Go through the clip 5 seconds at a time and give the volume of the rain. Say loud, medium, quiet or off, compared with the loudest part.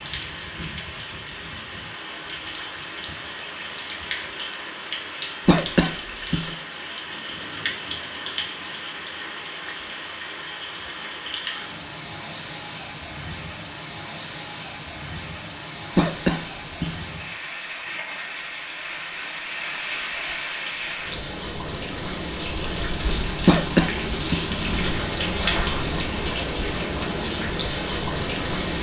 medium, medium, medium, medium, loud, loud.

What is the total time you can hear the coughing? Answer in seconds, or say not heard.
3 s.